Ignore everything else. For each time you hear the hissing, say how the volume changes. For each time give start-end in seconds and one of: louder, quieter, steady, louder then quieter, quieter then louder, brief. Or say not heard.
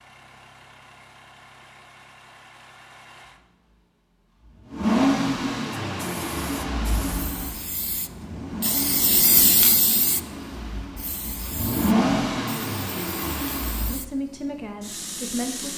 5.7-15.7 louder then quieter.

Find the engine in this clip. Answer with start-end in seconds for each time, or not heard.
0.0-14.0.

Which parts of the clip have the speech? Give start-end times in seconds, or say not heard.
13.8-15.7.